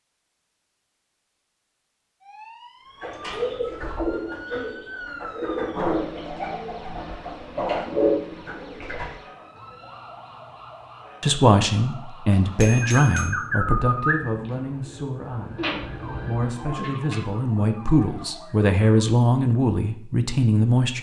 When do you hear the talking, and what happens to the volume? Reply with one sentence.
The talking can be heard from 11.2 to 20.9 s, getting quieter then louder.